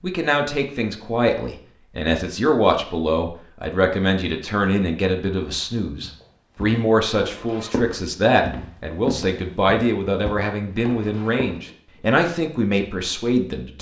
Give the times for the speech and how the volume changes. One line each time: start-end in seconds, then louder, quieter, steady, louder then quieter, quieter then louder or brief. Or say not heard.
0.0-13.7 steady.